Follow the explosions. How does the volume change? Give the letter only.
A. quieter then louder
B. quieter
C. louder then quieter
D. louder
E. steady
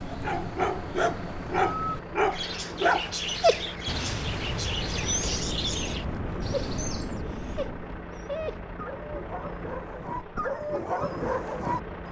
E.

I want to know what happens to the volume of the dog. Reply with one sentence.
The loudness of the dog goes down, then up.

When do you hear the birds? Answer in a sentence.
You can hear the birds from 0.0 to 7.2 s.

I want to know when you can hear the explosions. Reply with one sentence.
You can hear the explosions from 3.9 to 8.1 s.